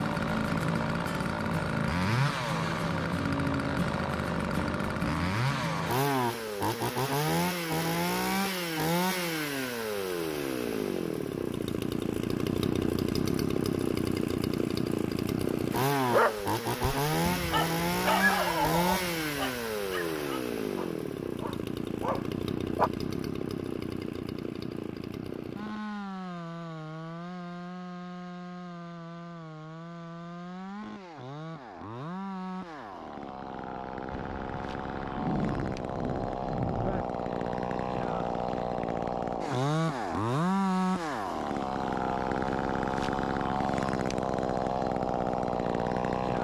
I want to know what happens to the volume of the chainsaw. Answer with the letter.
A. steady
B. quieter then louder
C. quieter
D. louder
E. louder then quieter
B.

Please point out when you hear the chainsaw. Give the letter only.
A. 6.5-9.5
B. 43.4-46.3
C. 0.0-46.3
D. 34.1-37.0
C.